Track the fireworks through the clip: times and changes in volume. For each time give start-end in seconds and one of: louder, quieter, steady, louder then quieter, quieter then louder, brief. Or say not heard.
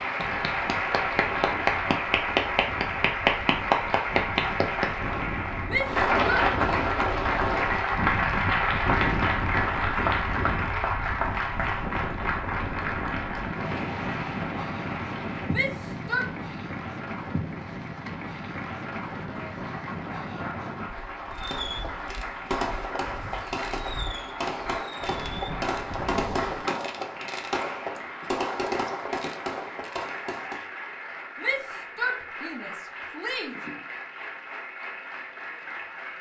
21.3-30.7 steady.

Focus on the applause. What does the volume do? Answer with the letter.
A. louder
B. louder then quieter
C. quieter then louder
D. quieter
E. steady
D.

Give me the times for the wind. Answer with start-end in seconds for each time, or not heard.
0.2-26.9.